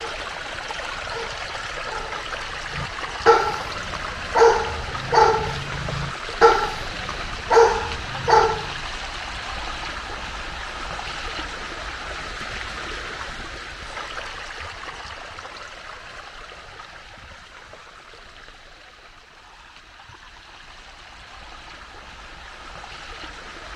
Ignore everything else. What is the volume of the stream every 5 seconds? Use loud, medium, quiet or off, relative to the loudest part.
loud, loud, loud, medium, medium.